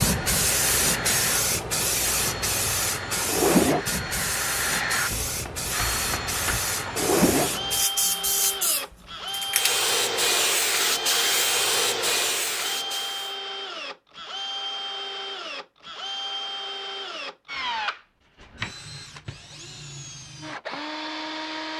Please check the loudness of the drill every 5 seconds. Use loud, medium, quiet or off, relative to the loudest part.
loud, loud, medium, medium, medium.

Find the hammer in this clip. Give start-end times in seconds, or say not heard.
5.0-6.6.